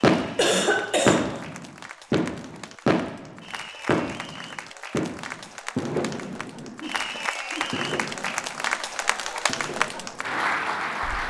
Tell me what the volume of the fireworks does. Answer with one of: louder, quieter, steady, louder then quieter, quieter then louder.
quieter.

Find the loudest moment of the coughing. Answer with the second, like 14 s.
1 s.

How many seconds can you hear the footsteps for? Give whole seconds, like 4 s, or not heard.
not heard.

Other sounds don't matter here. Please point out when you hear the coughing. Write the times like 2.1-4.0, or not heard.
0.3-1.4, 6.7-8.0.